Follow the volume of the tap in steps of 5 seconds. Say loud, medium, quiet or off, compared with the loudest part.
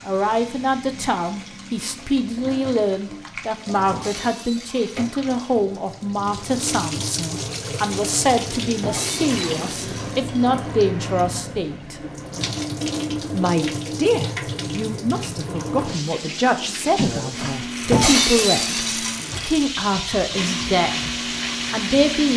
medium, loud, loud, loud, loud.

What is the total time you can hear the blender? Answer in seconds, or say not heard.
5 s.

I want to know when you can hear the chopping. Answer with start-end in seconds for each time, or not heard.
not heard.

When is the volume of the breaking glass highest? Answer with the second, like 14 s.
18 s.